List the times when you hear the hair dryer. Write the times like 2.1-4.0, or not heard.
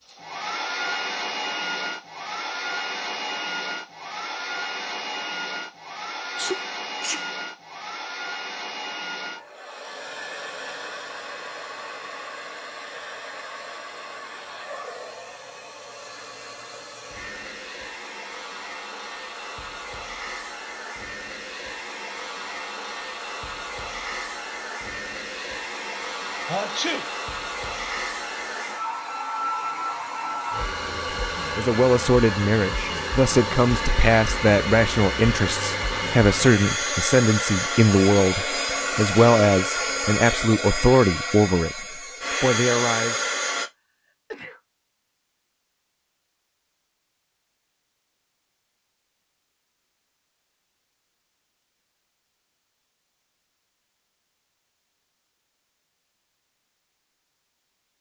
0.0-43.7.